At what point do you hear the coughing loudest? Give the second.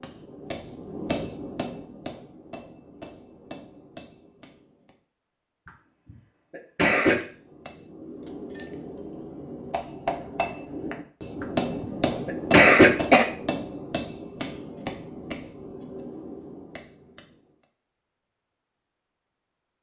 13 s.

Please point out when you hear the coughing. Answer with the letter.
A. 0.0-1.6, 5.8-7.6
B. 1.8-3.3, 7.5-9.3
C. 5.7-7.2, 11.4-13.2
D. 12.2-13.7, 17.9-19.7
C.